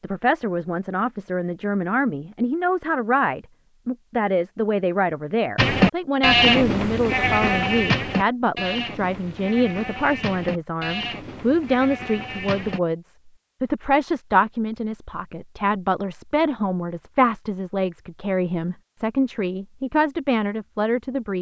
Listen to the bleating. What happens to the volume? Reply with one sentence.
The loudness of the bleating goes down.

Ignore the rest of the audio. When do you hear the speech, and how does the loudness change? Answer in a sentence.
You can hear the speech from 0.0 to 21.3 s, at a steady volume.